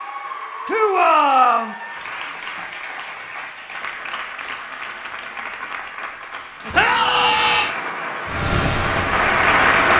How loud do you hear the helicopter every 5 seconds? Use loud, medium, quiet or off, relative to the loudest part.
off, loud.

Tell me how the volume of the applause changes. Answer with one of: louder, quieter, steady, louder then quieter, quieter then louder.
louder.